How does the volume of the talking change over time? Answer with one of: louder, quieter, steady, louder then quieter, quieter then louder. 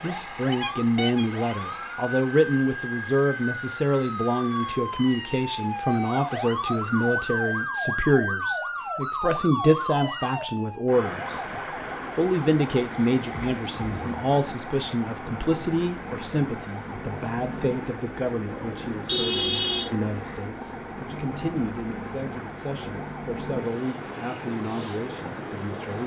quieter.